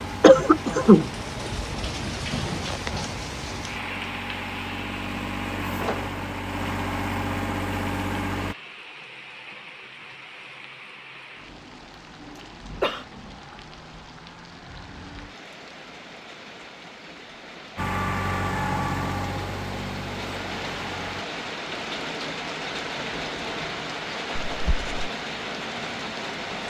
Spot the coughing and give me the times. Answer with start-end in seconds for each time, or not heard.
0.2-1.1, 12.3-13.1, 24.4-25.1.